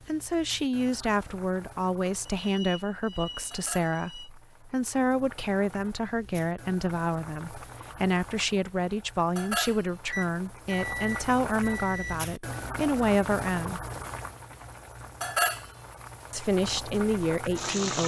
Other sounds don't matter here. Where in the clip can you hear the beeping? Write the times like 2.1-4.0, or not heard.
2.4-4.3, 10.1-12.2.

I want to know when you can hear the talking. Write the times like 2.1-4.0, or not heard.
0.1-13.8, 16.3-18.0.